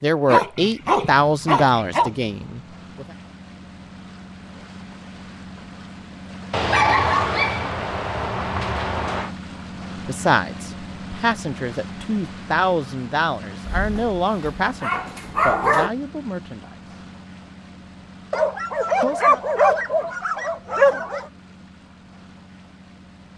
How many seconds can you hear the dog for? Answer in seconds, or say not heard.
10 s.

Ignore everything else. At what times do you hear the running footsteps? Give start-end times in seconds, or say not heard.
not heard.